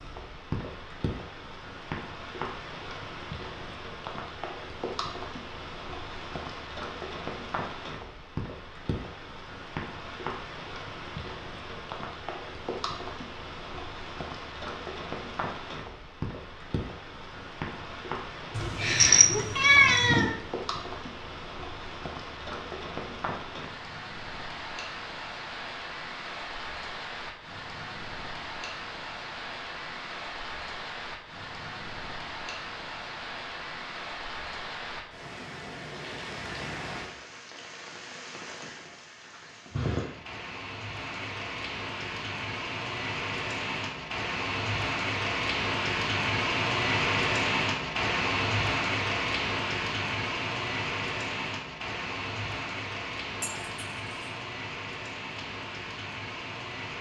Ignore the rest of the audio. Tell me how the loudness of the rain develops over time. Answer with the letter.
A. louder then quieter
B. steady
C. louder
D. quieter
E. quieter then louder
C.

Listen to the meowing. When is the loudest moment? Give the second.
20 s.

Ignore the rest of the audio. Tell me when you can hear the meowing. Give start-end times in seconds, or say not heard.
18.6-20.4, 53.4-54.3.